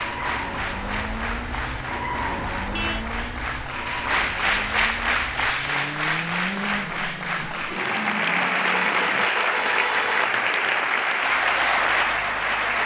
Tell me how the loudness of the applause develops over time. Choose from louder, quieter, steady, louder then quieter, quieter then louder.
louder.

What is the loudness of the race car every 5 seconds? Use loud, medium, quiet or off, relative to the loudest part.
loud, loud, off.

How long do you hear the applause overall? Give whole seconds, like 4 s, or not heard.
13 s.